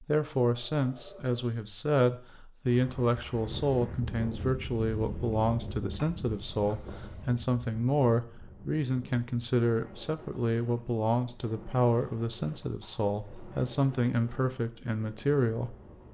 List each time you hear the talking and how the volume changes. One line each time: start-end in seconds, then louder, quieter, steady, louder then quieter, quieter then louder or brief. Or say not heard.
0.0-15.8 steady.